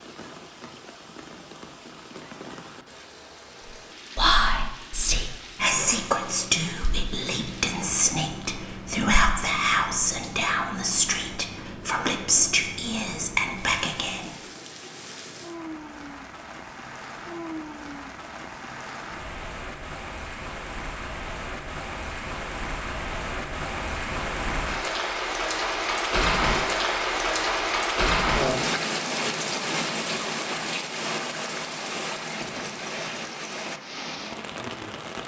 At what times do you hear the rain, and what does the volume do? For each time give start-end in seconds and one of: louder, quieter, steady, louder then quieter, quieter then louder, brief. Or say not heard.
0.0-35.2 louder.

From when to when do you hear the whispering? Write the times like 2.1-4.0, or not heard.
4.2-14.3.